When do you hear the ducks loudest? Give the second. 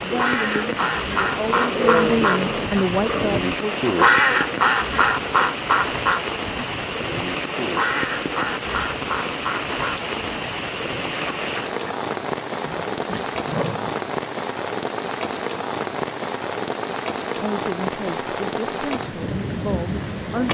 4 s.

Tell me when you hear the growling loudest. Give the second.
2 s.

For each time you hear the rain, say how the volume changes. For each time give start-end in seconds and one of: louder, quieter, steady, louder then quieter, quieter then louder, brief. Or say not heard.
0.0-20.4 steady.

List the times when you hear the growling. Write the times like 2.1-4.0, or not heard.
1.4-3.3, 12.6-13.9.